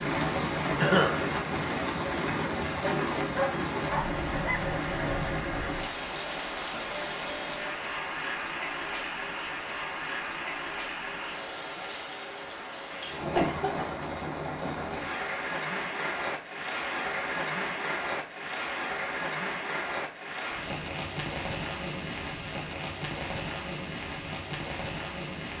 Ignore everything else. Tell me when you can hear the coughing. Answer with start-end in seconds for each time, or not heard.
0.8-1.2, 13.3-13.9.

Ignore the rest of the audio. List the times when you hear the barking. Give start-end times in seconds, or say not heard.
2.8-4.7.